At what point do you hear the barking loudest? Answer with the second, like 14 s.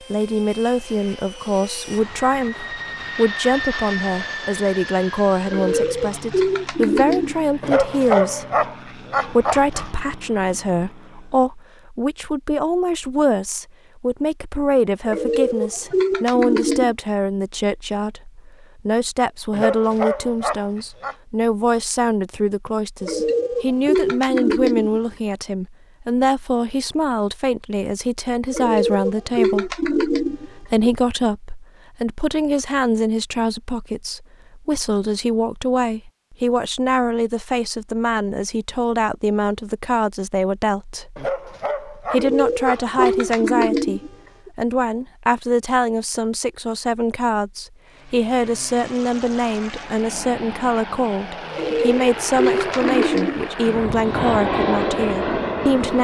8 s.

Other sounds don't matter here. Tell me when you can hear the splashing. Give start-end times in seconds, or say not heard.
not heard.